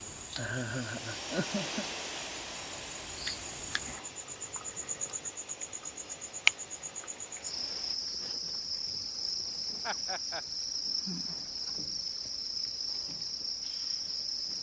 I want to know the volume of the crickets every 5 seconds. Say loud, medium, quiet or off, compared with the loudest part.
medium, loud, loud.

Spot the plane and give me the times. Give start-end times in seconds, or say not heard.
0.0-8.0.